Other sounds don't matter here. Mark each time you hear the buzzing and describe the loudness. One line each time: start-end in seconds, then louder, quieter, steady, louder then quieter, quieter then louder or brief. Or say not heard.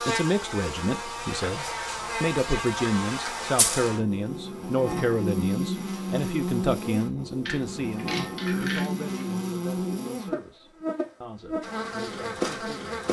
0.0-13.0 steady.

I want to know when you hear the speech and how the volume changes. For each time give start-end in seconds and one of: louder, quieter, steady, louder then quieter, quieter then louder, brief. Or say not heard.
0.0-12.9 quieter.